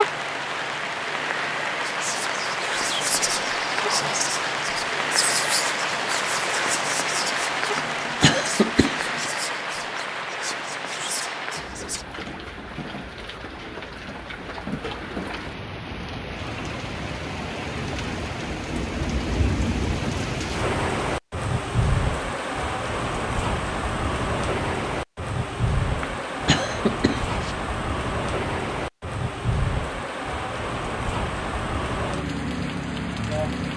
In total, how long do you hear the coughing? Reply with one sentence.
You can hear the coughing for 3 seconds altogether.